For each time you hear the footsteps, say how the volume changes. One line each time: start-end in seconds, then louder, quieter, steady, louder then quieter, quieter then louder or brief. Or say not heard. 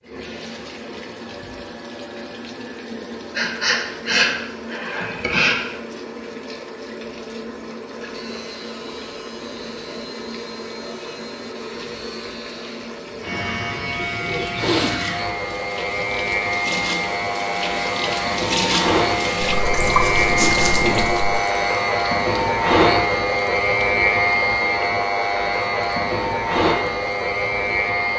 not heard.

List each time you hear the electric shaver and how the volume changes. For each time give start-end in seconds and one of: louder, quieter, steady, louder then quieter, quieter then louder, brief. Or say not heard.
8.1-28.1 louder.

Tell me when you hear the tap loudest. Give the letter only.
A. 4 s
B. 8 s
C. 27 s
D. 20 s
D.